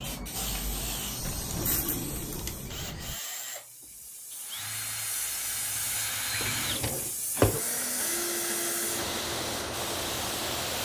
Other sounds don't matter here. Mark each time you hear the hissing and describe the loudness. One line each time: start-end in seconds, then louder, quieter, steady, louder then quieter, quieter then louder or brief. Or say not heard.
0.0-10.8 quieter then louder.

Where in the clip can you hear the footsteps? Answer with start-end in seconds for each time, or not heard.
not heard.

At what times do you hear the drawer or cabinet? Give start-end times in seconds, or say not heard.
1.1-3.1, 6.3-7.2.